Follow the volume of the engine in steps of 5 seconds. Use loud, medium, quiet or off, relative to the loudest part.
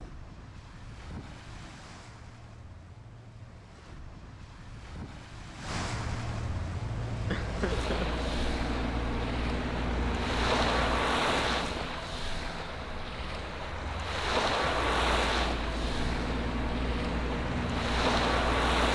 off, loud, loud, loud.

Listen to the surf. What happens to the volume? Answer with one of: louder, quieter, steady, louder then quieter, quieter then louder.
louder.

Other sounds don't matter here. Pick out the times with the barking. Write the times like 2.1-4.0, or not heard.
not heard.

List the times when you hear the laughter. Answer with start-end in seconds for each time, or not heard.
7.3-8.1.